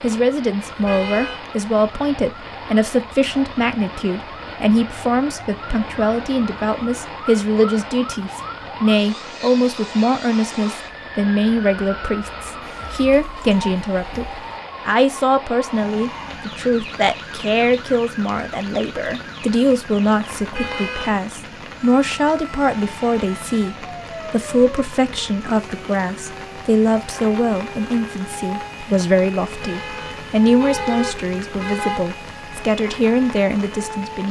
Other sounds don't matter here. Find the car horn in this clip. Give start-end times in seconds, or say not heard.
0.6-1.4, 20.4-21.2, 29.4-32.0.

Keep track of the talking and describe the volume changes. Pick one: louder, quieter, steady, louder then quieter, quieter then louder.
steady.